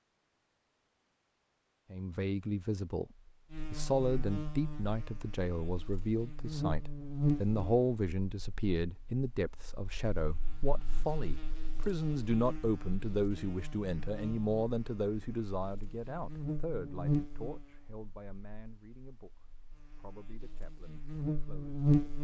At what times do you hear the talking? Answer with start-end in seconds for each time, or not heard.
1.9-22.1.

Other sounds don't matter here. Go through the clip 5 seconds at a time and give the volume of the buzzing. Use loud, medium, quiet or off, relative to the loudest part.
medium, medium, quiet, medium, loud.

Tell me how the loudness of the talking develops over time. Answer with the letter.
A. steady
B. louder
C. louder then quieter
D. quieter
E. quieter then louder
D.